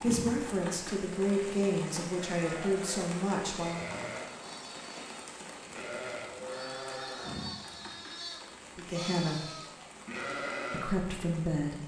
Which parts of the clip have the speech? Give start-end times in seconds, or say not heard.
0.0-3.9, 8.8-9.4, 10.7-11.8.